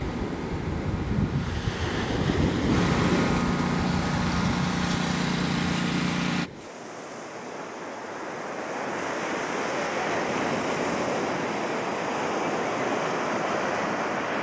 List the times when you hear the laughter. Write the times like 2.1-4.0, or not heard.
not heard.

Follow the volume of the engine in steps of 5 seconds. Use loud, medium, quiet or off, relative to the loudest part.
loud, loud, off.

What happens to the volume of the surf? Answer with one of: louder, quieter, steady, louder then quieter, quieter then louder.
quieter then louder.